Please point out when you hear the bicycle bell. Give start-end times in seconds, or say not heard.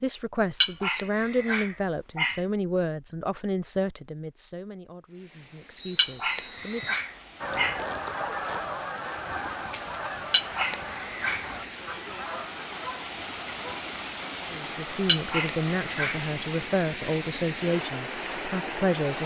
not heard.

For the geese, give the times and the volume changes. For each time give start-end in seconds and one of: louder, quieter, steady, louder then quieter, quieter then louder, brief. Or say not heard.
7.4-13.8 quieter.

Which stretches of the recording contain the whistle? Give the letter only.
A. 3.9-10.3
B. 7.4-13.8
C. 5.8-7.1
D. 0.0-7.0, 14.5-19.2
C.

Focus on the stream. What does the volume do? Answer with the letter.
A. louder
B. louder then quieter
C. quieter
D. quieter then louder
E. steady
A.